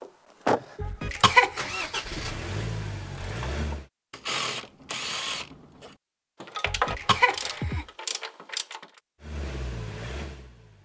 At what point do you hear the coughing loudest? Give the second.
1 s.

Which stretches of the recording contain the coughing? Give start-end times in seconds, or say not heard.
0.8-1.7, 6.7-7.8.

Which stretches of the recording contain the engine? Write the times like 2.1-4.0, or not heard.
0.0-3.9, 9.2-10.7.